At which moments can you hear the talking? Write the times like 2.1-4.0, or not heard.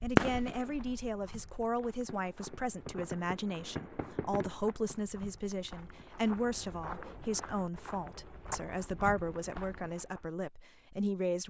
0.0-11.4.